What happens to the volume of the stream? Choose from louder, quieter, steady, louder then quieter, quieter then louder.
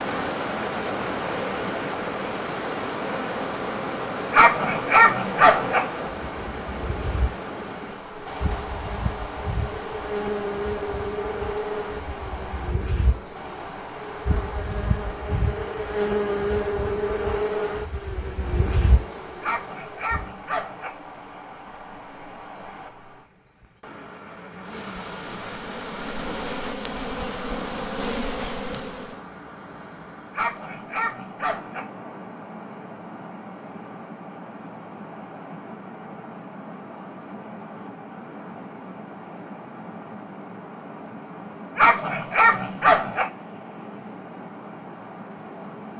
quieter.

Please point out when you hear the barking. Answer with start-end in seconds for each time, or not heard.
4.3-5.8, 19.4-20.9, 30.3-31.8, 41.8-43.2.